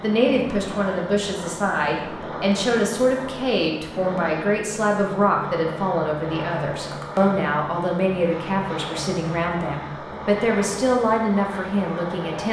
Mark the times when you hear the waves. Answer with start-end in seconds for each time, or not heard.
not heard.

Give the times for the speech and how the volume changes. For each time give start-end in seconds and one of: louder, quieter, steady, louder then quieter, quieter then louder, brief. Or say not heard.
0.0-12.4 steady.